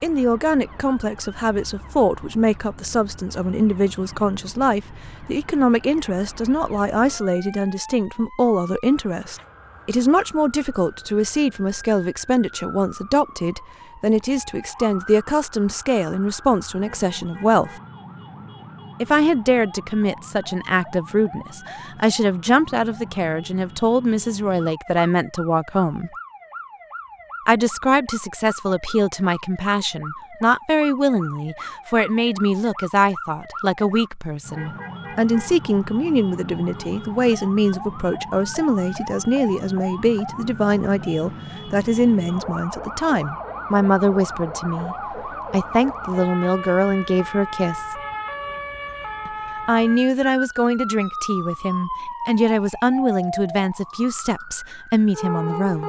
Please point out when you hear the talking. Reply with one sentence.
You can hear the talking from 0.0 to 17.7 s, from 19.0 to 26.1 s, from 27.4 to 48.0 s and from 49.2 to 55.8 s.